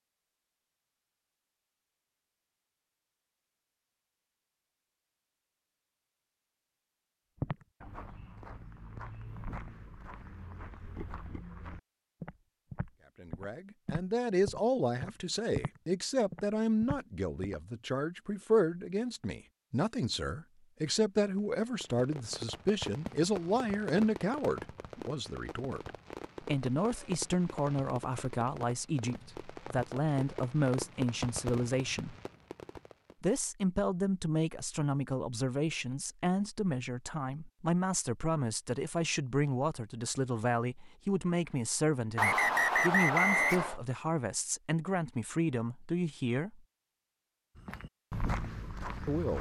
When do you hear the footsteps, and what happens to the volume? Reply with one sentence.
The footsteps can be heard from 7.3 to 17.6 s, getting louder; and briefly from 47.5 to 49.3 s.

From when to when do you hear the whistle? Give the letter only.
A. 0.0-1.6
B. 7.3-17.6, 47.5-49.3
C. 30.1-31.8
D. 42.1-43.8
D.